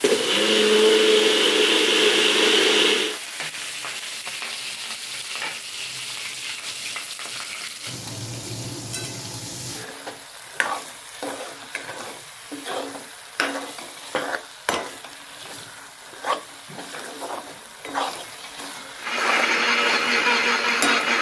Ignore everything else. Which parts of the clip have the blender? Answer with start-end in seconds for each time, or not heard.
0.0-3.2, 18.9-21.1.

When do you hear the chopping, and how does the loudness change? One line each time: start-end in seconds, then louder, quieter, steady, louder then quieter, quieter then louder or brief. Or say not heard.
not heard.